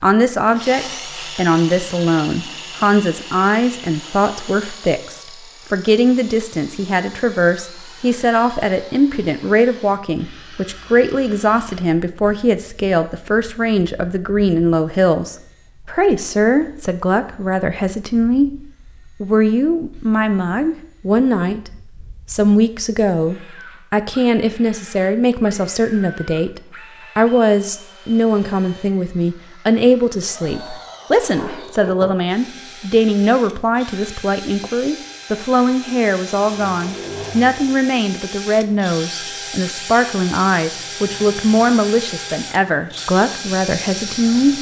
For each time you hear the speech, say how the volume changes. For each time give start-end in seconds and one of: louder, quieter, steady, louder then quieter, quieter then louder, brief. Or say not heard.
0.0-21.7 steady
22.3-44.5 steady.